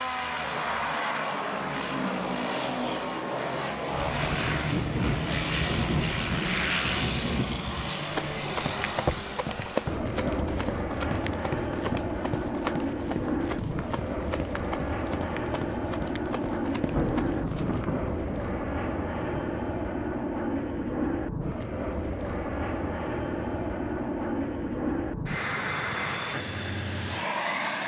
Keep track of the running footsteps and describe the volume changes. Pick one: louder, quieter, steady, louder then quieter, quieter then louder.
quieter.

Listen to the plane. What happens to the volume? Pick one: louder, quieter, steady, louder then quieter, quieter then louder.
steady.